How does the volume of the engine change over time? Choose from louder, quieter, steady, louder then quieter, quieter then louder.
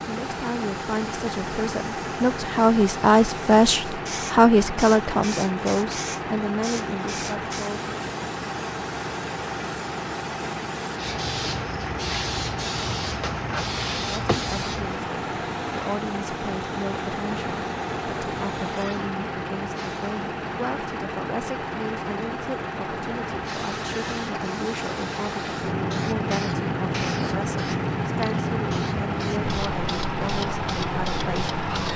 steady.